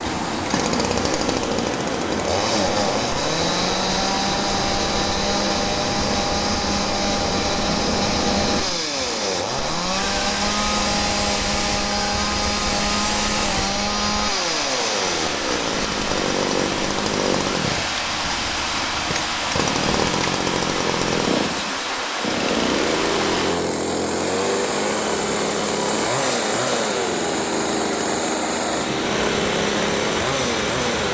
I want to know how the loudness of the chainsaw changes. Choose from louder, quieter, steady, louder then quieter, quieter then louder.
steady.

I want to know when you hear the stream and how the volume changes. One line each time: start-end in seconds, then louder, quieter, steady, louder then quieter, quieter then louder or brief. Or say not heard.
0.0-31.0 steady.